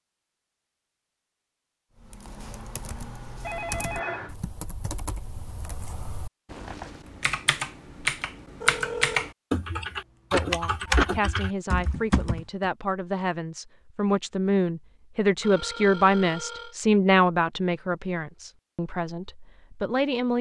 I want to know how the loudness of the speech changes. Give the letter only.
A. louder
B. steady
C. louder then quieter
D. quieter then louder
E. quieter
C.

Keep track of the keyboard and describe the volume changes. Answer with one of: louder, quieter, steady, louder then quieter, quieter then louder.
louder.